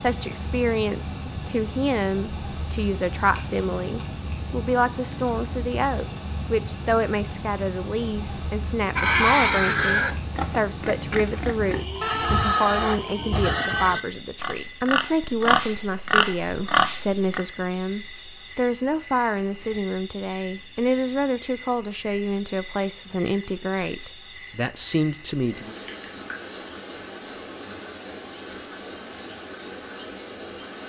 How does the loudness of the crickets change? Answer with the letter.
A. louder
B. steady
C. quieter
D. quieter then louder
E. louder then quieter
B.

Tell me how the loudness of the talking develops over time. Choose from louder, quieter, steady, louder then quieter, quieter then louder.
steady.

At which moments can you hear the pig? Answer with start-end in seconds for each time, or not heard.
8.9-17.4.